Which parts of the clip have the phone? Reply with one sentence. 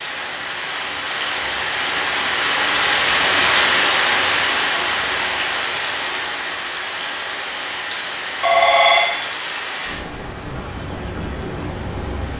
The phone can be heard from 8.4 to 9.1 s.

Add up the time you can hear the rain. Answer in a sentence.
The rain can be heard for 12 seconds in total.